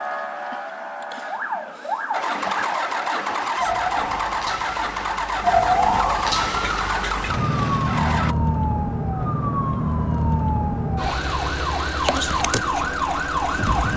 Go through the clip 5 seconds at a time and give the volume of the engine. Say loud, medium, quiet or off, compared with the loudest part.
loud, loud, off.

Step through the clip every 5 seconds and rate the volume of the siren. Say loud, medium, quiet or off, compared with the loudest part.
medium, loud, loud.